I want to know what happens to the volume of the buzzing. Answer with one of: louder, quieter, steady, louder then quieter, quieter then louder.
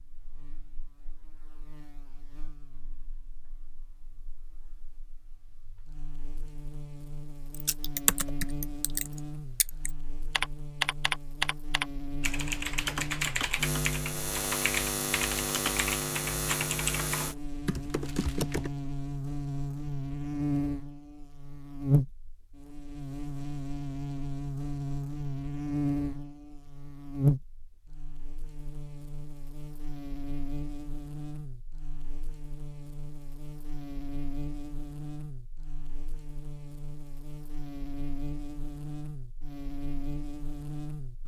louder then quieter.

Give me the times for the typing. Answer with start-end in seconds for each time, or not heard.
7.5-18.7.